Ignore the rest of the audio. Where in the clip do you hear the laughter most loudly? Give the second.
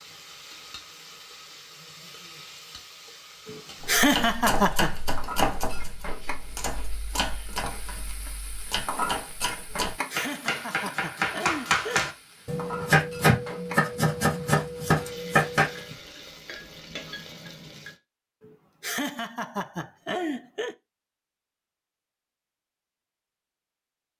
4 s.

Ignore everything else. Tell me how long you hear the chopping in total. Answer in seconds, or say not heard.
12 s.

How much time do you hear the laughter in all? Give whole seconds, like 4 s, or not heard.
6 s.